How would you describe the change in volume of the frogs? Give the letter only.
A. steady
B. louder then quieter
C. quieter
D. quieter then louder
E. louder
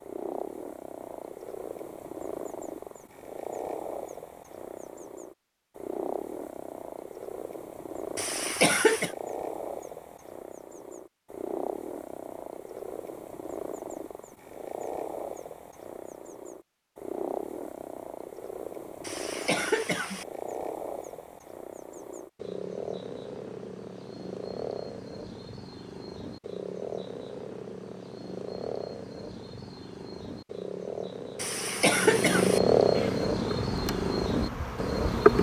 E.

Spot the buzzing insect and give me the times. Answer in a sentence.
You can hear the buzzing insect from 32.9 to 35.3 s.